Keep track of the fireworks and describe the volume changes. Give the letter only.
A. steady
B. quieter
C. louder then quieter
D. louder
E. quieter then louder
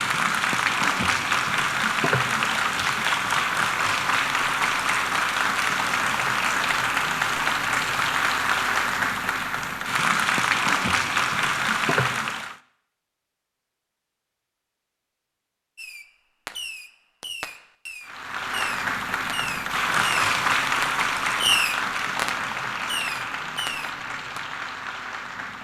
C.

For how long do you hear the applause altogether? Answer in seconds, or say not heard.
20 s.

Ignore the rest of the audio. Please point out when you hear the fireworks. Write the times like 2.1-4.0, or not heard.
15.8-24.4.